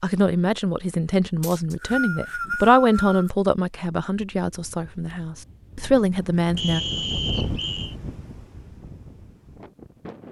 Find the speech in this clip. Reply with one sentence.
You can hear the speech from 0.0 to 6.8 s.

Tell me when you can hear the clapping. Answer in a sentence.
You can't hear the clapping here.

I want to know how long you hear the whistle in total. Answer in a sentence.
You can hear the whistle for 3 seconds altogether.